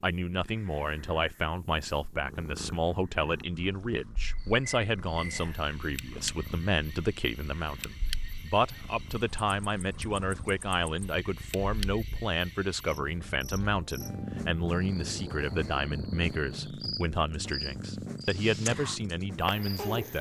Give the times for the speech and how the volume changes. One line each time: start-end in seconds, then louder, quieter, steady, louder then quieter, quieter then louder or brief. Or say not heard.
0.0-20.1 steady.